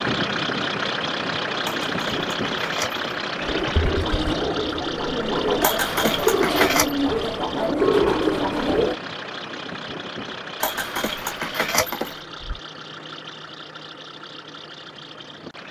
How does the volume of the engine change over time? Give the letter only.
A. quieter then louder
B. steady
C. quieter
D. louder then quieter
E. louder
C.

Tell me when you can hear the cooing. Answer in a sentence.
The cooing can be heard from 3.4 to 8.9 s.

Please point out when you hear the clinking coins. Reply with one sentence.
The clinking coins can be heard from 1.6 to 3.0 s, from 5.6 to 7.0 s and from 10.6 to 12.6 s.